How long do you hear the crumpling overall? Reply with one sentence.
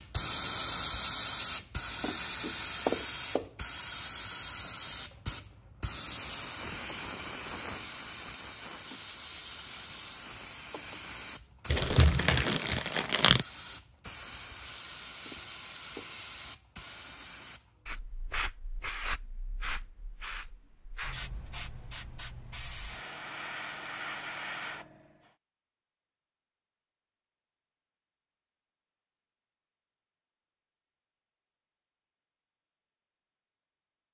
You can hear the crumpling for 2 seconds altogether.